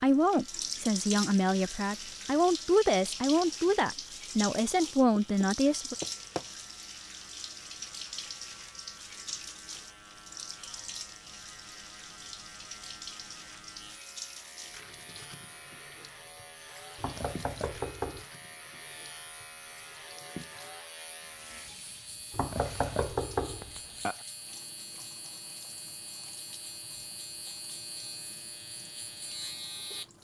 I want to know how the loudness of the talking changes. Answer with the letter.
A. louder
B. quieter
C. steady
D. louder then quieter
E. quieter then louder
C.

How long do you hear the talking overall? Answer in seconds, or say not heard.
6 s.